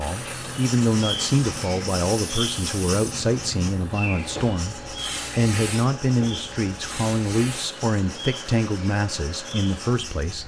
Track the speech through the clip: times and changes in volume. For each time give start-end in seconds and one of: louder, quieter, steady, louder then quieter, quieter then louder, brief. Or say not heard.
0.0-10.4 steady.